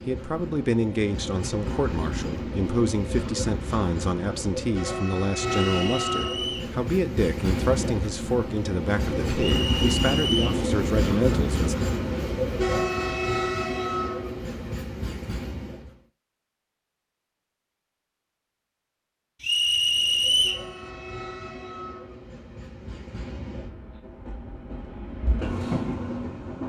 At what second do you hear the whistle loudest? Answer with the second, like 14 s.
20 s.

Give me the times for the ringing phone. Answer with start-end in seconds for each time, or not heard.
not heard.